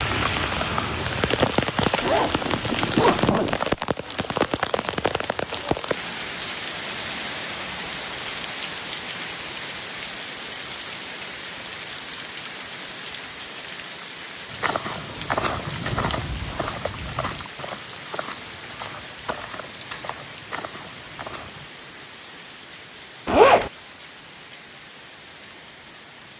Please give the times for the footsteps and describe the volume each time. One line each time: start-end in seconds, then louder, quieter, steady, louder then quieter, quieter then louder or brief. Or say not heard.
14.4-21.7 quieter.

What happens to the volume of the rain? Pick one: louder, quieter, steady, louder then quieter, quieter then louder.
quieter.